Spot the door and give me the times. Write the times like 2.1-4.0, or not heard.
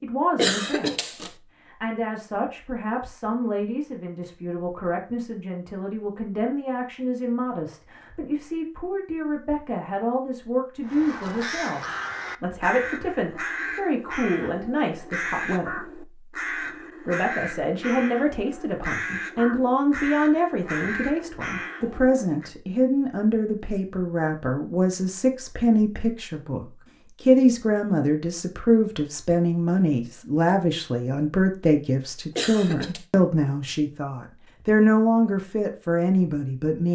not heard.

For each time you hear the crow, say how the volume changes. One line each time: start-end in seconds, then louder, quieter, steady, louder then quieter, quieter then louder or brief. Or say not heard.
10.8-22.5 steady.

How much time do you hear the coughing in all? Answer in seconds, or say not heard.
2 s.